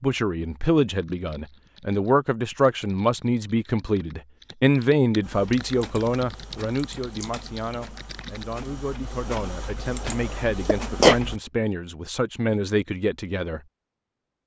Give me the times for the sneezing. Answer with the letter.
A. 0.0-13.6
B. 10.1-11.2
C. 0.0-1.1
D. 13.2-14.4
B.